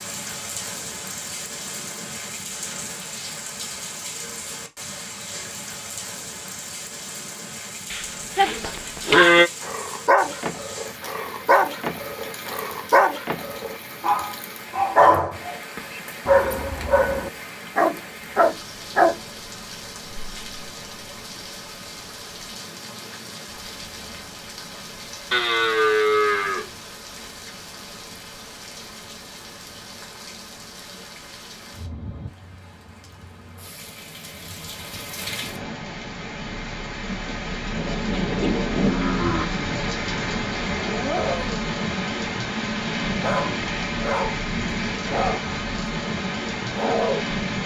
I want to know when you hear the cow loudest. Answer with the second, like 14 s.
9 s.